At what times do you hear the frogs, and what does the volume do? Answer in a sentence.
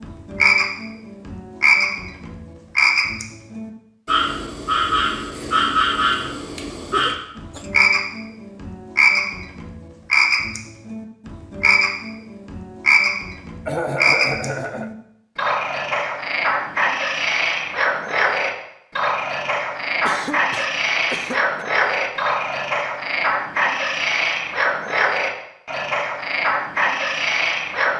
The frogs can be heard from 0.0 to 27.9 s, at a steady volume.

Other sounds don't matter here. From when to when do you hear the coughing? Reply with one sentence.
You can hear the coughing from 6.9 to 7.8 s, from 13.7 to 14.9 s and from 20.0 to 21.6 s.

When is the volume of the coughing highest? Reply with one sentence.
The loudest moment of the coughing is at 14 seconds.